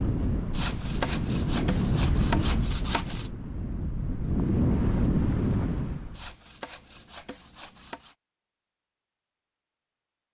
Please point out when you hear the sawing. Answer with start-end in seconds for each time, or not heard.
0.5-3.3, 6.1-8.2.